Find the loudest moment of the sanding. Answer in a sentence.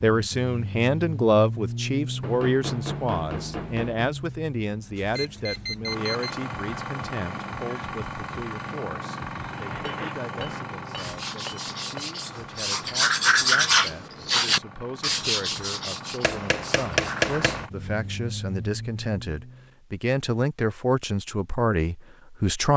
The loudest moment of the sanding is at 14 seconds.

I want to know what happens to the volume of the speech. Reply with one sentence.
The volume of the speech goes down, then up.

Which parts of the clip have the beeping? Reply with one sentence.
You can hear the beeping from 5.0 to 6.5 s.